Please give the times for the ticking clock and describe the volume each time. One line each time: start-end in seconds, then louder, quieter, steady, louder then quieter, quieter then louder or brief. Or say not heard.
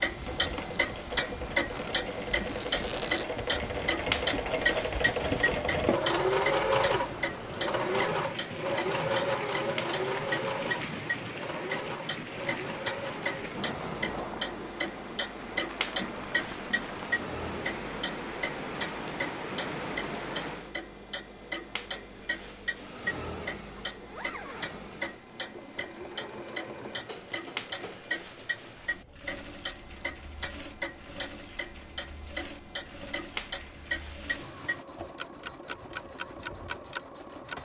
0.0-37.6 quieter.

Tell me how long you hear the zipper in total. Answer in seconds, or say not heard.
2 s.